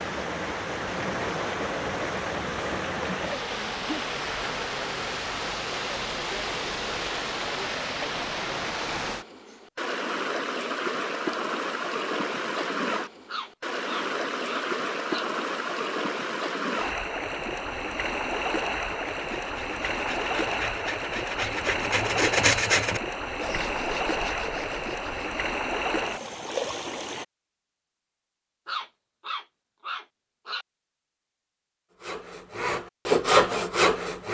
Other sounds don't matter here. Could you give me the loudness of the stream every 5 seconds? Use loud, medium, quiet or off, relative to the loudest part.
loud, loud, loud, loud, loud, loud, off.